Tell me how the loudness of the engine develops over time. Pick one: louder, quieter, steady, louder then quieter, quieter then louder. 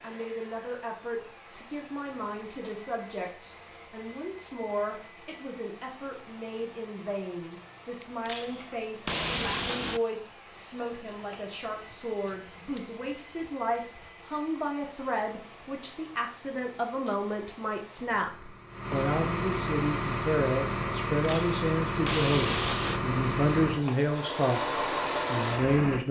louder.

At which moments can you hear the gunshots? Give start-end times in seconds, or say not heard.
8.0-10.0, 21.2-23.0.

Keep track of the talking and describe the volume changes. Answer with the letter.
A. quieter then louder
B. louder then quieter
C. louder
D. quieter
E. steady
C.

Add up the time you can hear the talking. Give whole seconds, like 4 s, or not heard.
26 s.